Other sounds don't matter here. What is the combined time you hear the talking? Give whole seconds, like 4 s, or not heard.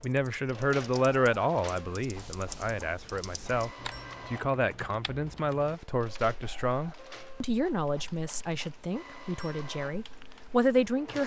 11 s.